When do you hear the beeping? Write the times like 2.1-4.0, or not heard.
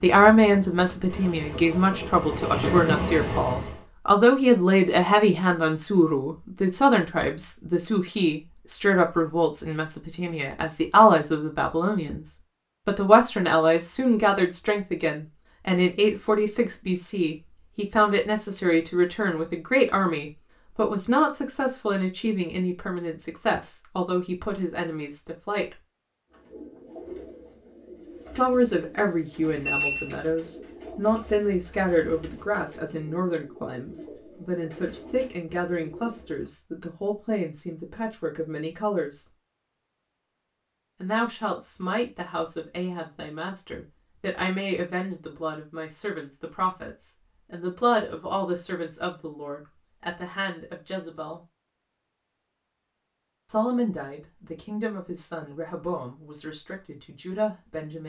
29.6-30.2.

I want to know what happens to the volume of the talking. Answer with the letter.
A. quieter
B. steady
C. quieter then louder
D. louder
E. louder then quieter
A.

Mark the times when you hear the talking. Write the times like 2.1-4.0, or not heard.
0.0-25.8, 28.4-39.2, 41.0-51.4, 53.5-58.0.